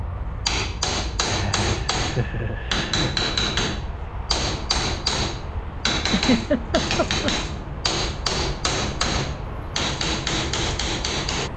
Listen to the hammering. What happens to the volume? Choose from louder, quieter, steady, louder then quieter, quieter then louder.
steady.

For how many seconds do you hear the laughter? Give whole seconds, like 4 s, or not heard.
3 s.